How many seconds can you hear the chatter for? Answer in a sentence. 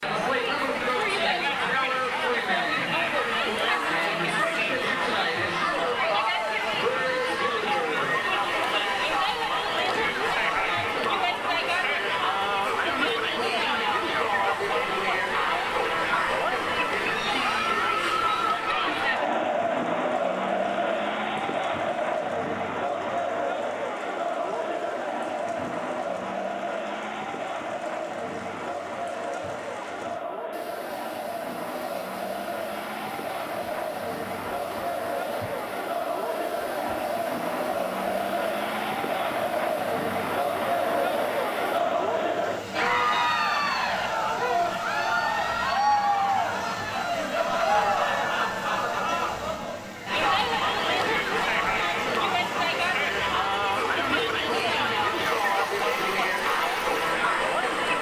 You can hear the chatter for 58 seconds altogether.